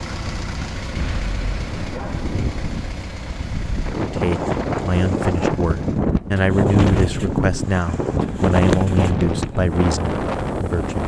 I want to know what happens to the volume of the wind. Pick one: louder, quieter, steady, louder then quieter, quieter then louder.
louder.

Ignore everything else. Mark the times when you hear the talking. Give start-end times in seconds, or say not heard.
4.0-11.0.